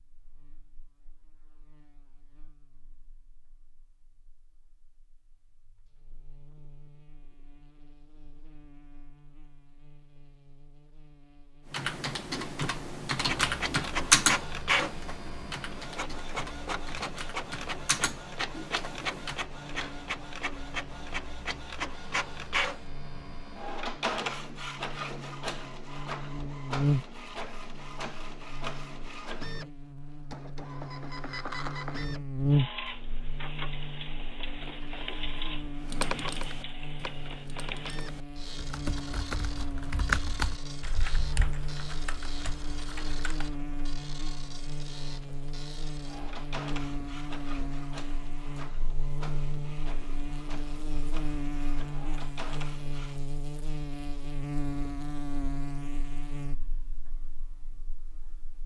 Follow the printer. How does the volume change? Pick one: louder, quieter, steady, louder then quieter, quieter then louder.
quieter.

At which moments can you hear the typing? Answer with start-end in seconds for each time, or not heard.
11.7-19.4, 35.8-43.5.